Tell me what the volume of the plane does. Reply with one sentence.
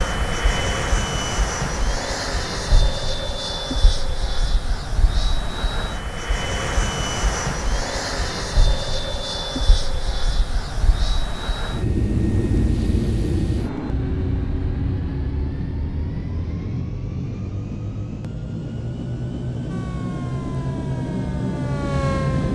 The loudness of the plane stays about the same.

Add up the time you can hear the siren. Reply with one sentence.
You can hear the siren for 3 seconds altogether.